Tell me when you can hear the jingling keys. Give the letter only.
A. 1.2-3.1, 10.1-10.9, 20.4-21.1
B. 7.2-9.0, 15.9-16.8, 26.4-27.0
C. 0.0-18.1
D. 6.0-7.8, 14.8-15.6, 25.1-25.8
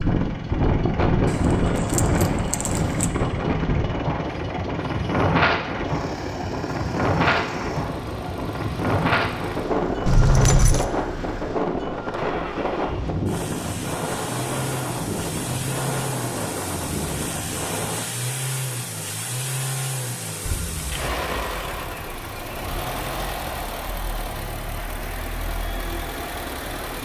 A.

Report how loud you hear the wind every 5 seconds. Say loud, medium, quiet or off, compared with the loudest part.
loud, loud, loud, medium, off, off.